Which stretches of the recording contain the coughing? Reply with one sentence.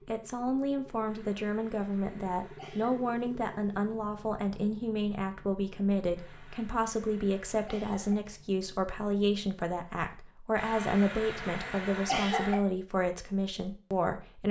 You can hear the coughing from 1.1 to 3.0 s, from 6.2 to 8.2 s and from 10.6 to 12.6 s.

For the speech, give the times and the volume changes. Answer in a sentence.
You can hear the speech from 0.1 to 14.4 s, at a steady volume.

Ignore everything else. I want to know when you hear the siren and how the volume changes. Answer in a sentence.
You can't hear the siren here.